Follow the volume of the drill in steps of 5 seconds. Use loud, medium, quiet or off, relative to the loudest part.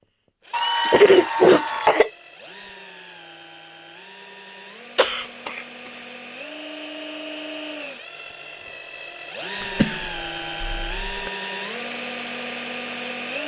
quiet, medium, loud.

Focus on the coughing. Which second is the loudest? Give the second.
1 s.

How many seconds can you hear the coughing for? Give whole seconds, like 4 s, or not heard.
4 s.